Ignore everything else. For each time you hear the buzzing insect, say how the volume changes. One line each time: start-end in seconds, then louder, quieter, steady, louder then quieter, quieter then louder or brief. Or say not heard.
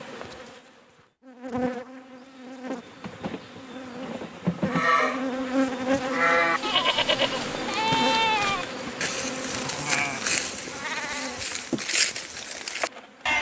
0.0-13.3 louder then quieter.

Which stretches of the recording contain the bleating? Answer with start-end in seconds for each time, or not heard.
4.7-13.3.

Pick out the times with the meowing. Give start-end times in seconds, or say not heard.
not heard.